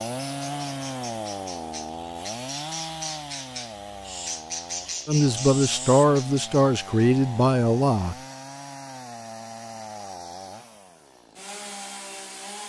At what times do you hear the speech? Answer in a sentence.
You can hear the speech from 5.0 to 8.2 s.